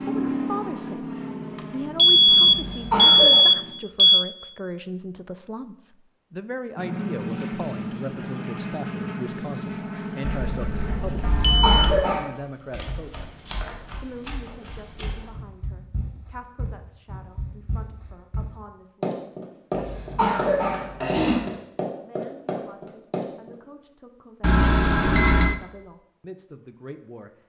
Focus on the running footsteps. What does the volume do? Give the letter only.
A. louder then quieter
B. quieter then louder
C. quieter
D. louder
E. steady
D.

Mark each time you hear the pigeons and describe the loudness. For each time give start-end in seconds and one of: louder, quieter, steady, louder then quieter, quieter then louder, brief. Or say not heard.
not heard.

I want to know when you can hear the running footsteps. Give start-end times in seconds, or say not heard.
12.6-23.5.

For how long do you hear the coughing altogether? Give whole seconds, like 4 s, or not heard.
4 s.